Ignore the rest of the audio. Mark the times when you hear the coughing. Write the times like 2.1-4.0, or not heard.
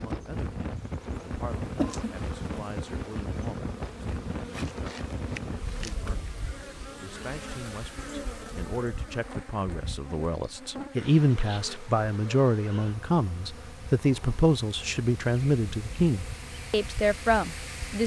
1.8-2.3.